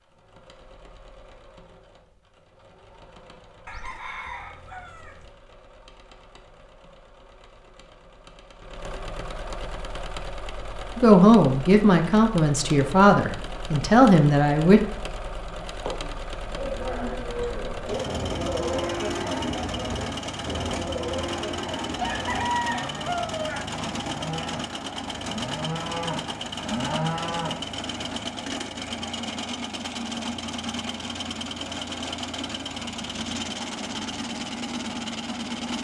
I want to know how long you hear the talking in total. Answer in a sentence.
The talking can be heard for 4 seconds in total.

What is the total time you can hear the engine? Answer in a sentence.
You can hear the engine for 36 seconds altogether.